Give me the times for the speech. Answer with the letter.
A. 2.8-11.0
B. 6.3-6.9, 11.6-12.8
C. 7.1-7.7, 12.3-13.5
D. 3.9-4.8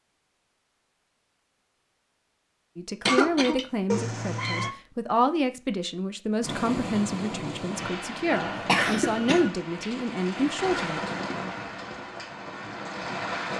A.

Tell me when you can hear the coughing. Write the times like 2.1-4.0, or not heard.
3.0-3.6, 8.3-9.5.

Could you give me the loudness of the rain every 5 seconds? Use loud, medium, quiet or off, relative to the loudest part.
off, loud, loud.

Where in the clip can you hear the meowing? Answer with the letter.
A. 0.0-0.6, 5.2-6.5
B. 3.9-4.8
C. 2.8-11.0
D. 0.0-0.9
B.